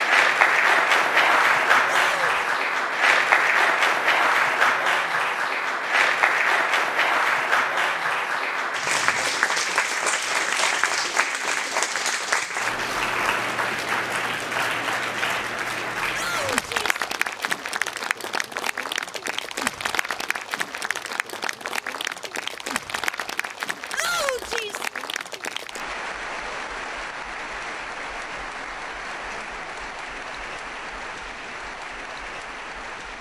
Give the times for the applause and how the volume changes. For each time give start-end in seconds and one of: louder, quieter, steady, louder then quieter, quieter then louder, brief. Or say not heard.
0.0-33.1 quieter.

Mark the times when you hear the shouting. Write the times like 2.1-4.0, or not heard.
1.9-2.4, 16.1-16.9, 23.9-24.9.